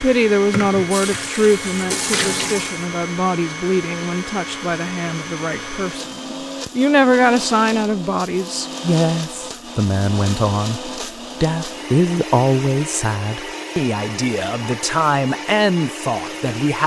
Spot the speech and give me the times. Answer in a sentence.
You can hear the speech from 0.0 to 16.8 s.